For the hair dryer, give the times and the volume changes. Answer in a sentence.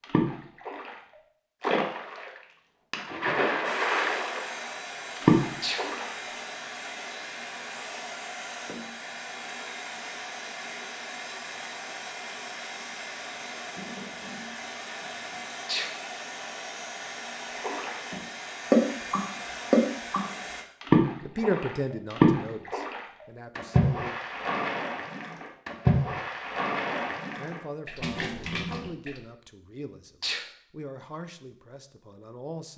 The hair dryer can be heard from 3.6 to 20.6 s, at a steady volume.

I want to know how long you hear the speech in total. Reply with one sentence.
The speech can be heard for 8 seconds in total.